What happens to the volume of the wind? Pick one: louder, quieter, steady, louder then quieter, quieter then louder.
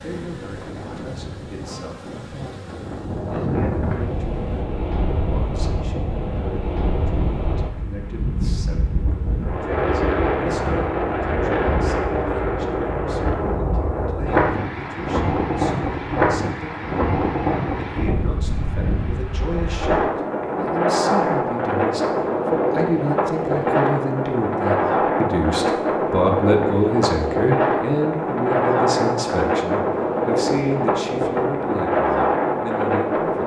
louder.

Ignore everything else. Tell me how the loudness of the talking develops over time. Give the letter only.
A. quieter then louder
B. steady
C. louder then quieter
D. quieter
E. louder
E.